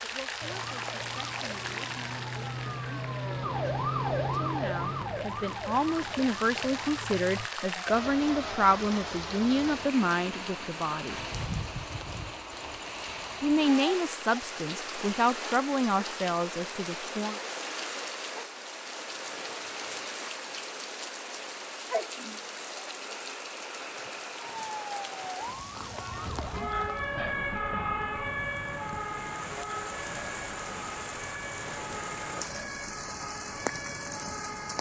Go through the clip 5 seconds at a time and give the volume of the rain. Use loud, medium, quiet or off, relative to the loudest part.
loud, loud, loud, loud, loud, medium, loud.